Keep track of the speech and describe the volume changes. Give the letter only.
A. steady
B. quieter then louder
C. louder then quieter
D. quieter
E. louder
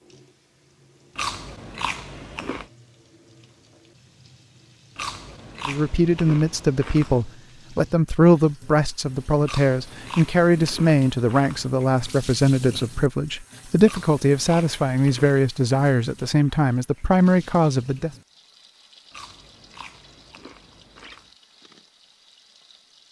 A.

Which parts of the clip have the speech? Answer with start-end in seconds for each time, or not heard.
5.7-18.1.